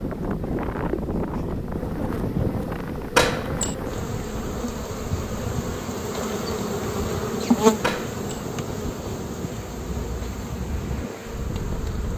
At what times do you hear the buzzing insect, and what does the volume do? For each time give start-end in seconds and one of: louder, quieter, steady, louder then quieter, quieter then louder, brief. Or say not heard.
0.0-12.1 louder then quieter.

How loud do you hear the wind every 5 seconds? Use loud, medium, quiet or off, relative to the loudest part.
loud, medium, loud.